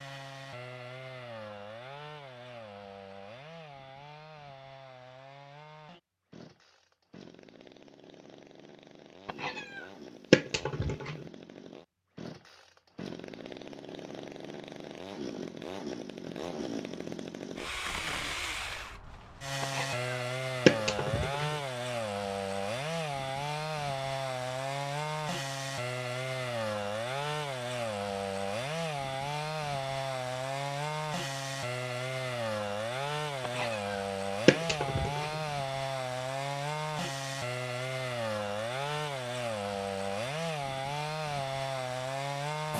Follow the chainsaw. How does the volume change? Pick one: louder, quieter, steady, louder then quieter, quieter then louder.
louder.